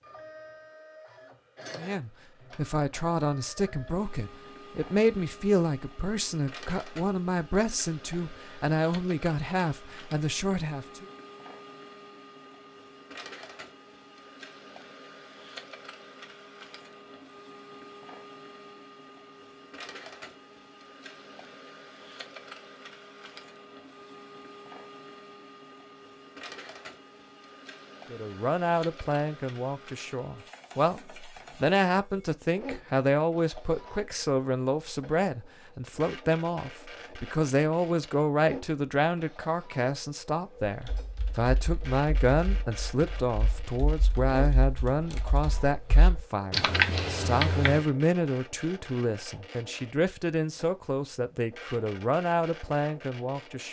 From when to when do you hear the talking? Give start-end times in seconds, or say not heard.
1.8-11.1, 28.1-53.6.